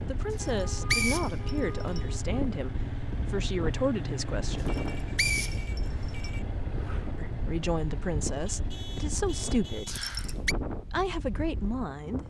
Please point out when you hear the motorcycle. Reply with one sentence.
You can hear the motorcycle from 0.0 to 9.8 s.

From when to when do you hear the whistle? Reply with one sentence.
The whistle can be heard from 0.3 to 2.0 s, from 4.7 to 6.3 s and from 9.8 to 10.6 s.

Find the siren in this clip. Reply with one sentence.
The siren can't be heard in this clip.